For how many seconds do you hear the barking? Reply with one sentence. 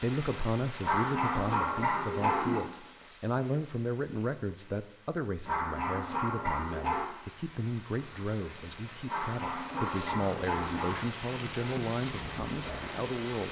The barking can be heard for 5 seconds in total.